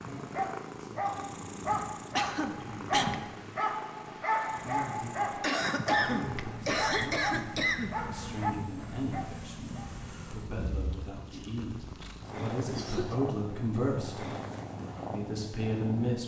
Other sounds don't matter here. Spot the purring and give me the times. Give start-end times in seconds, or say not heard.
0.0-16.2.